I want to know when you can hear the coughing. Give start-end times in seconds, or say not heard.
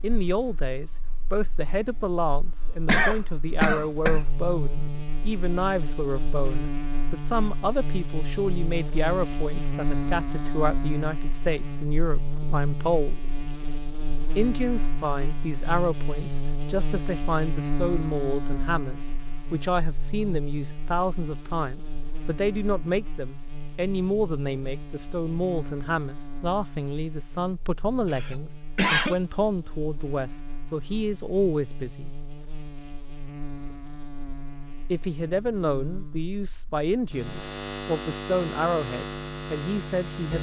2.9-4.2, 28.1-29.1.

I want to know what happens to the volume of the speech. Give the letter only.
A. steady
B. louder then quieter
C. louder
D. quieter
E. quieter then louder
A.